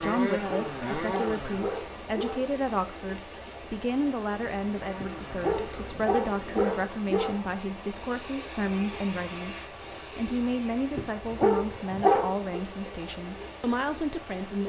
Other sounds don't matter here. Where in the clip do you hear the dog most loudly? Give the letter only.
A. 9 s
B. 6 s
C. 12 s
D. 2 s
C.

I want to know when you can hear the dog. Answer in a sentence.
The dog can be heard from 0.1 to 2.5 s, from 5.0 to 7.8 s and from 10.9 to 12.6 s.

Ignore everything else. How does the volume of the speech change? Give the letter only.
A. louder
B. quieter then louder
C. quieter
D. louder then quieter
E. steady
E.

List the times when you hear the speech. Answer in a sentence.
You can hear the speech from 0.0 to 14.6 s.